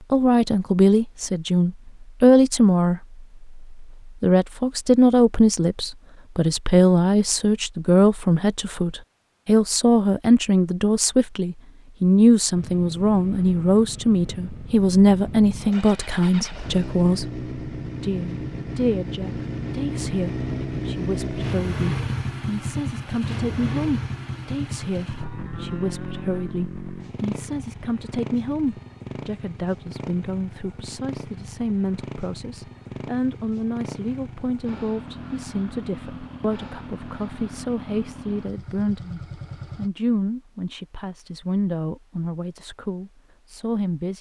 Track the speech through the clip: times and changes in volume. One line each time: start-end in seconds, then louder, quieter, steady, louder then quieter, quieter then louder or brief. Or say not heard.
0.1-44.1 quieter.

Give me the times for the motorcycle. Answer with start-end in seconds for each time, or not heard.
12.5-39.9.